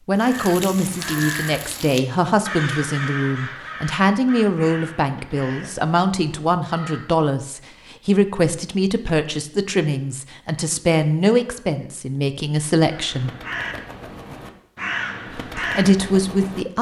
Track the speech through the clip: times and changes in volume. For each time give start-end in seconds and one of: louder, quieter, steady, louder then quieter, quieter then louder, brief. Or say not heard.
0.1-13.3 steady
15.3-16.7 brief.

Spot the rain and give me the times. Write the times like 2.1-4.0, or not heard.
not heard.